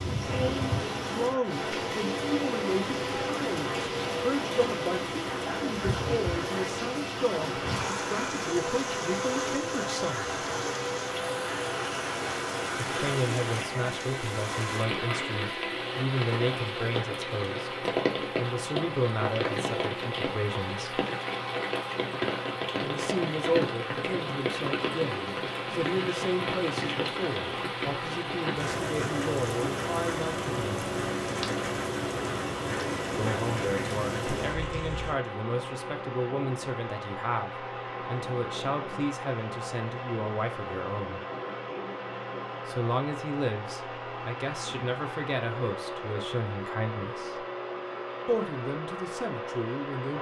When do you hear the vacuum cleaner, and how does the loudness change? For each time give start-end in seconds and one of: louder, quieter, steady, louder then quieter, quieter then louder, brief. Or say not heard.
0.1-50.1 steady.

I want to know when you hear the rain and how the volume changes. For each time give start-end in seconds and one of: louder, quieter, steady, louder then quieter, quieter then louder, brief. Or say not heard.
0.0-35.2 steady.